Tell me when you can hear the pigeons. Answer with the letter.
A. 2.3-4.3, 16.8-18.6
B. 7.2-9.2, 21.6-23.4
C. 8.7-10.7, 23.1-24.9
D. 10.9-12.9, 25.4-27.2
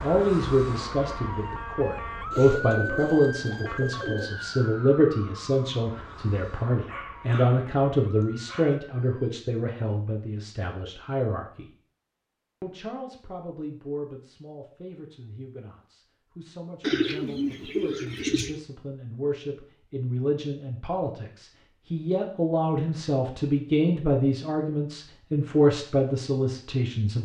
A.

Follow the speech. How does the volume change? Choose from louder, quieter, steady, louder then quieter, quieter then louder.
quieter then louder.